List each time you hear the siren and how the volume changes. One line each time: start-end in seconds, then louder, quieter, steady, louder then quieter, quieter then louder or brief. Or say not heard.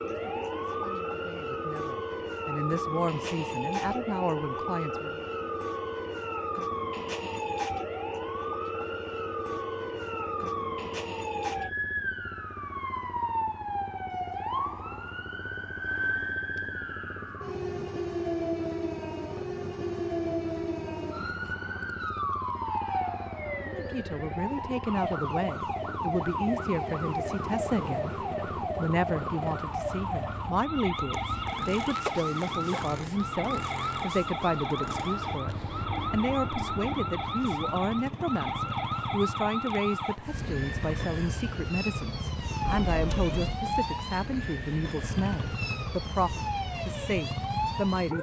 0.0-48.1 steady.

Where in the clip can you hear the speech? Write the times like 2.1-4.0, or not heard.
0.0-5.2, 23.6-48.1.